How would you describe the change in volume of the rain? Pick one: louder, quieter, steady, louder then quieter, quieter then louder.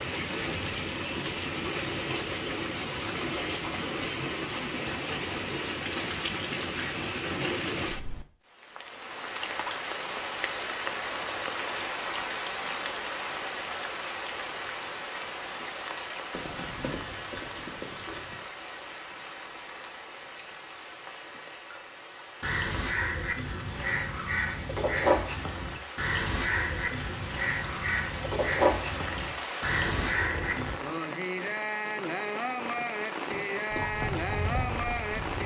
quieter then louder.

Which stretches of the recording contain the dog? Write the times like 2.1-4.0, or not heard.
not heard.